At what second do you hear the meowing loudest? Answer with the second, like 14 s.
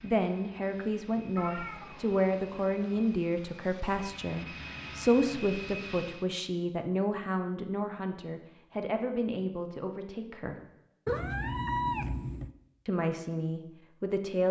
12 s.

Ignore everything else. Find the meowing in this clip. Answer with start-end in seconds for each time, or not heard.
1.4-3.2, 11.1-12.5.